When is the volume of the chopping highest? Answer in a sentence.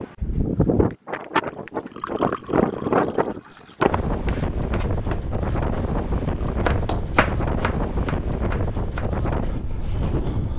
The volume of the chopping peaks at 7 seconds.